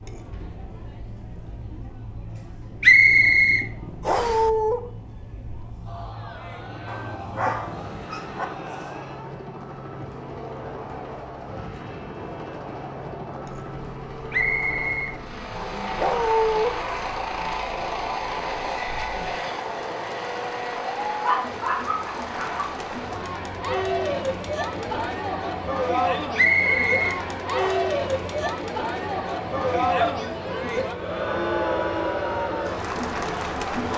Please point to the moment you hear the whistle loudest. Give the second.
3 s.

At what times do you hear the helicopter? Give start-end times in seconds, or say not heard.
0.0-33.8.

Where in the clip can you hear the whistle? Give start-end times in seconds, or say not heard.
2.8-4.4, 14.3-15.8, 26.4-27.8.